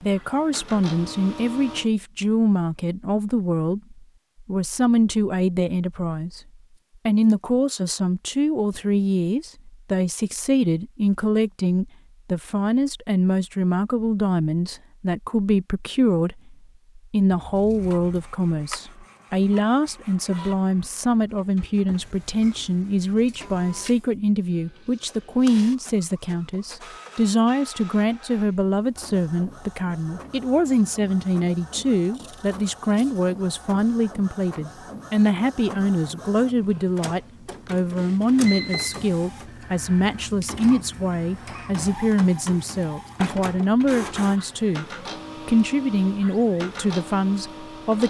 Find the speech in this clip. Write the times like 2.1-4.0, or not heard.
0.0-6.4, 7.0-44.9, 45.5-48.0.